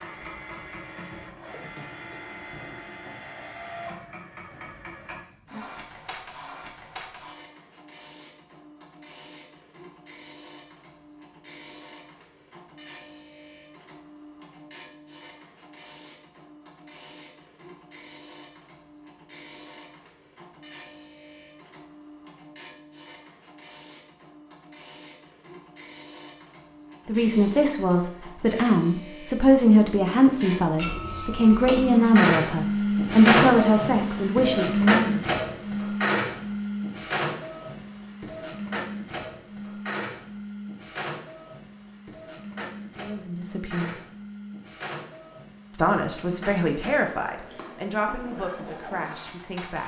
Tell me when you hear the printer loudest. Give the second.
33 s.